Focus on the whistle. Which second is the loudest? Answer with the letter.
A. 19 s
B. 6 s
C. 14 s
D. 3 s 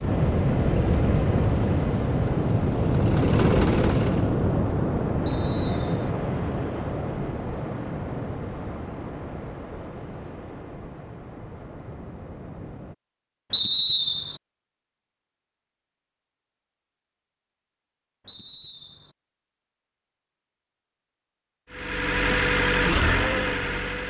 C.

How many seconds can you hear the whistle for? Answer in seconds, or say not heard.
3 s.